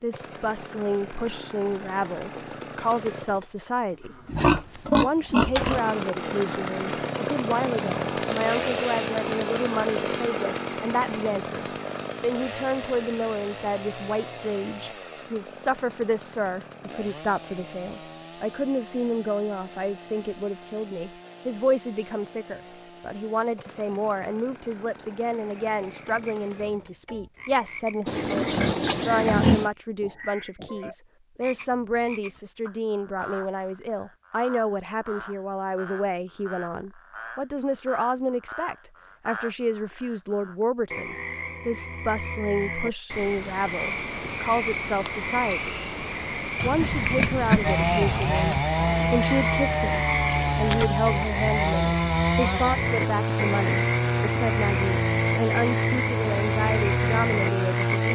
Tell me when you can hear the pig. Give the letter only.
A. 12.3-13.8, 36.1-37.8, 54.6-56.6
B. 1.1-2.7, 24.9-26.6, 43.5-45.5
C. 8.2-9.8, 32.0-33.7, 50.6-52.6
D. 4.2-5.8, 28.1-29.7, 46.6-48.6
D.